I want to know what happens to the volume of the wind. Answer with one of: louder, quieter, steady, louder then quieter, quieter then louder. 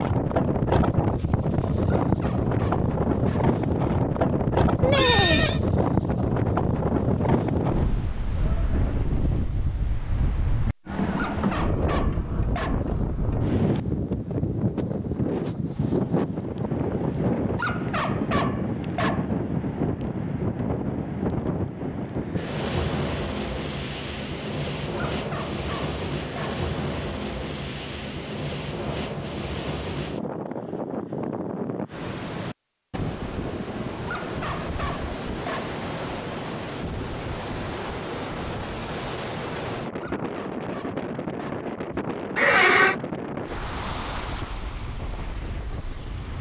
quieter.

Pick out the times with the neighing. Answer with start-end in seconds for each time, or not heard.
4.8-5.6, 42.4-43.0.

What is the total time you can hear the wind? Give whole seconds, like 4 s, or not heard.
46 s.